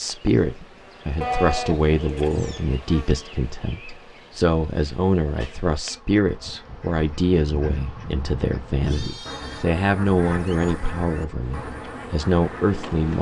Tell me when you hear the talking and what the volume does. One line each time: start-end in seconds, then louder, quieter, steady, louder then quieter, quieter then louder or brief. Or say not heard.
0.0-13.1 steady.